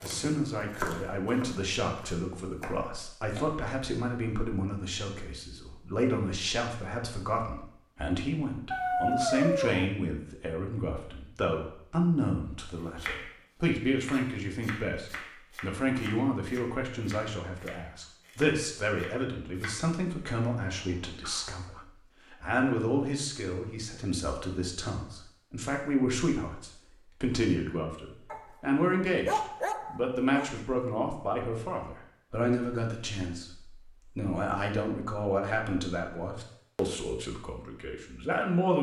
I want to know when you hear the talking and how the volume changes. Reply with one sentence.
You can hear the talking from 0.0 to 38.7 s, at a steady volume.